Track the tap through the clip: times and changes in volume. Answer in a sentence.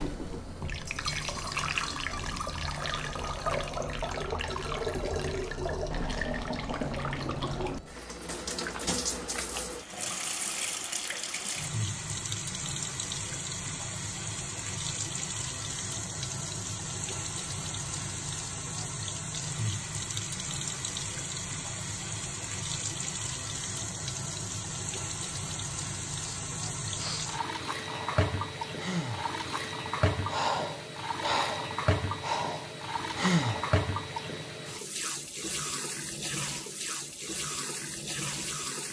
The tap can be heard from 0.0 to 38.8 s, at a steady volume.